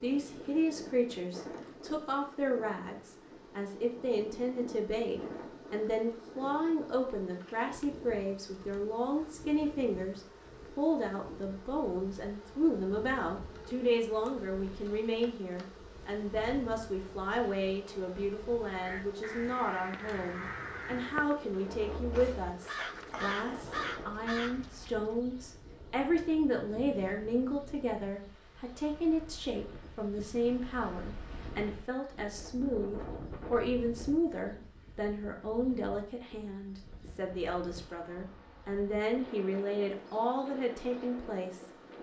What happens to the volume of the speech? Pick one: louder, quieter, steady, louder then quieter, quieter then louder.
steady.